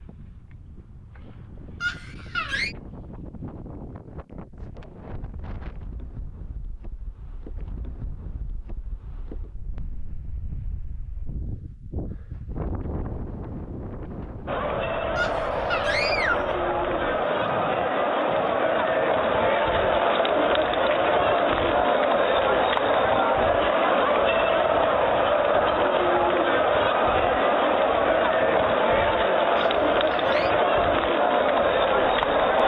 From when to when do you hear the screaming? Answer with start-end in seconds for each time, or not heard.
1.8-2.8, 15.2-16.6, 29.6-30.5.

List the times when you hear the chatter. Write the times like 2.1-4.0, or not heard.
14.4-32.6.